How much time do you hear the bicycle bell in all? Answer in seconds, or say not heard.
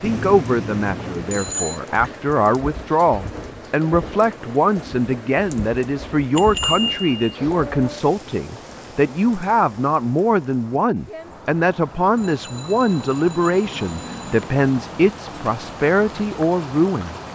5 s.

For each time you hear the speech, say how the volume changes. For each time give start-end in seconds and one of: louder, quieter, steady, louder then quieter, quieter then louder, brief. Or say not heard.
0.0-17.1 steady.